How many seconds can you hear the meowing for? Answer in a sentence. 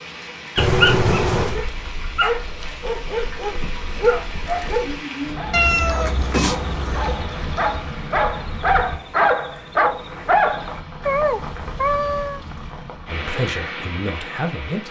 The meowing can be heard for 4 seconds in total.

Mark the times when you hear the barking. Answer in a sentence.
You can hear the barking from 0.6 to 10.8 s.